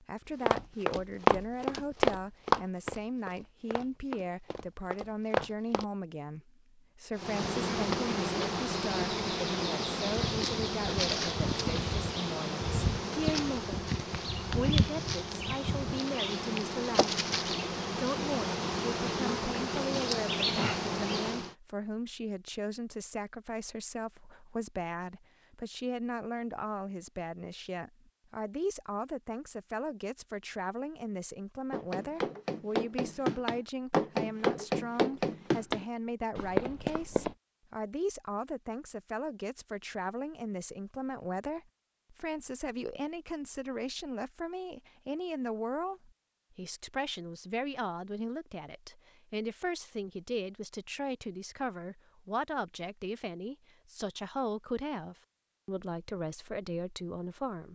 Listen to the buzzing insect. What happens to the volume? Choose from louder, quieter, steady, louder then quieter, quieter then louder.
steady.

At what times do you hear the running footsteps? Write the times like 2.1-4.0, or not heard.
0.4-5.8, 31.7-37.4.